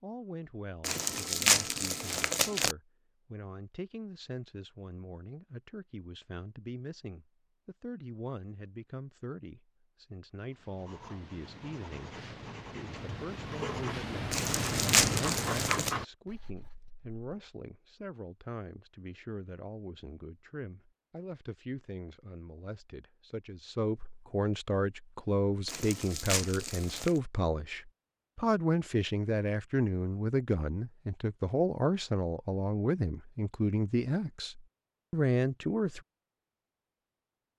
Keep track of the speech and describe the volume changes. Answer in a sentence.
The loudness of the speech goes up.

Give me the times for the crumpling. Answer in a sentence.
The crumpling can be heard from 0.8 to 2.8 s, from 14.3 to 15.9 s and from 25.6 to 27.2 s.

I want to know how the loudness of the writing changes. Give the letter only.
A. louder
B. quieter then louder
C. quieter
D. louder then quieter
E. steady
A.